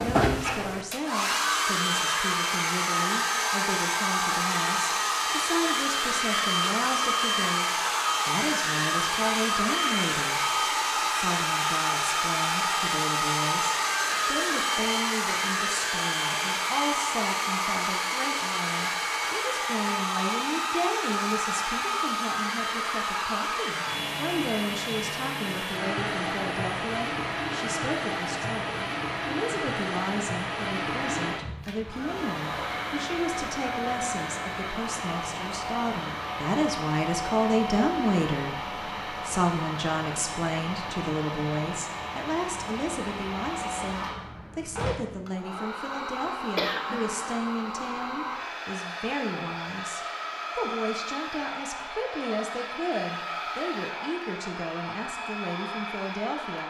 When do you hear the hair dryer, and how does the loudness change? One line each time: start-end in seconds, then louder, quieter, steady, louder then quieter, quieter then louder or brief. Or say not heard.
0.0-56.6 quieter.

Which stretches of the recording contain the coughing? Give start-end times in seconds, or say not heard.
46.5-47.4.